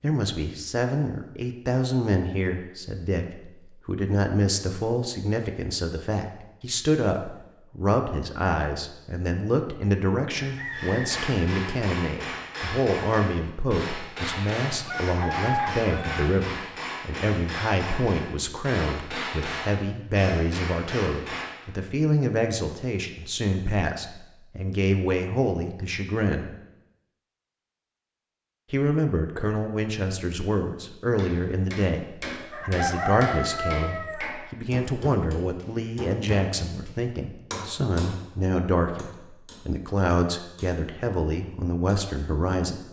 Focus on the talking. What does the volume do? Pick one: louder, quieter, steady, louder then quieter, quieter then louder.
steady.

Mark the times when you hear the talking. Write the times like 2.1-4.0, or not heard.
0.0-26.6, 28.7-42.8.